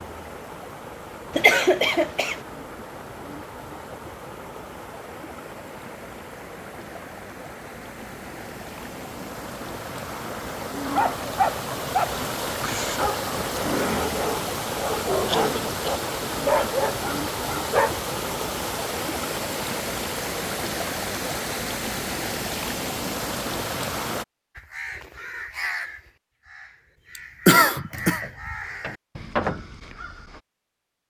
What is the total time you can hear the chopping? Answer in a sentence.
The chopping can't be heard in this clip.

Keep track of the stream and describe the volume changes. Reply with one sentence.
The loudness of the stream goes up.